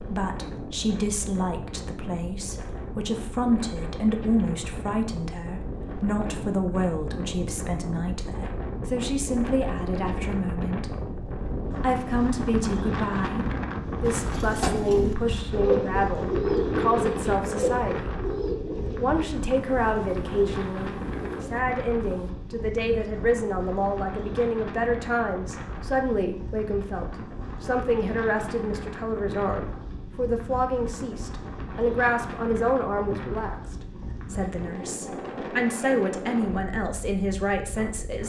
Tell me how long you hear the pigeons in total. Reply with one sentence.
The pigeons can be heard for 8 seconds in total.